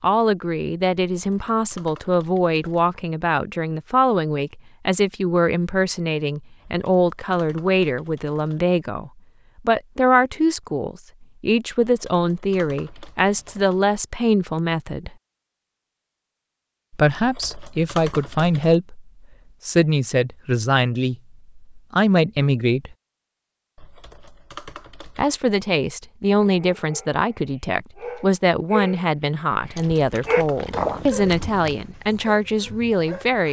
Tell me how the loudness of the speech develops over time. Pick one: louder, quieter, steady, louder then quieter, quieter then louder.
steady.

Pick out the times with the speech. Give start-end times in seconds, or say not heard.
0.0-15.2, 16.9-22.9, 25.1-33.4.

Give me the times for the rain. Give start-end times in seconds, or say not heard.
not heard.